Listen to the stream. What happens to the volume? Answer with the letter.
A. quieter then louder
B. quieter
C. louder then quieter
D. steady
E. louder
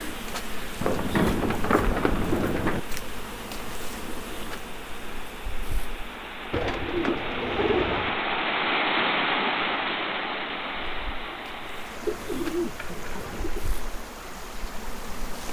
C.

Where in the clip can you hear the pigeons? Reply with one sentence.
The pigeons can be heard from 0.8 to 2.8 s, from 6.5 to 8.2 s and from 12.1 to 13.7 s.